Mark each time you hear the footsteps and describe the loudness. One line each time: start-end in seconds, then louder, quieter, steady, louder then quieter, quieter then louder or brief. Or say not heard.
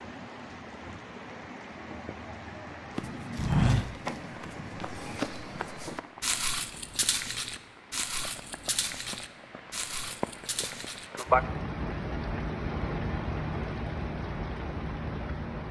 3.0-11.2 quieter.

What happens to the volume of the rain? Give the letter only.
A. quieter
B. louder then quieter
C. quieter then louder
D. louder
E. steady
C.